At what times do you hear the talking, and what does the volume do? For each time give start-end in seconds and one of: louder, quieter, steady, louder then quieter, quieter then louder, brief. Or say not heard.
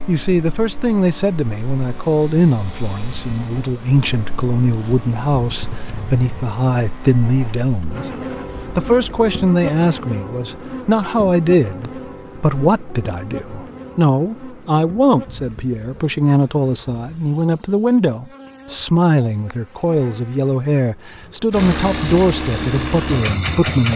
0.1-8.1 steady
8.7-23.9 steady.